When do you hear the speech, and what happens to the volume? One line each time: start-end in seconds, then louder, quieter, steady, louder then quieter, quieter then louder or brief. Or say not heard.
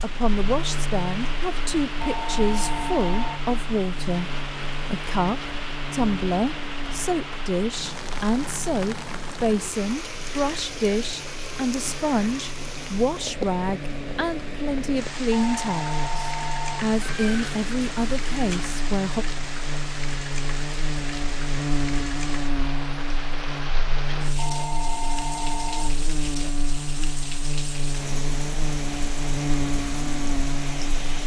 0.0-19.2 steady.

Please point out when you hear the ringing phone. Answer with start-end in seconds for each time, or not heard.
2.0-3.4, 15.3-16.9, 24.4-26.0.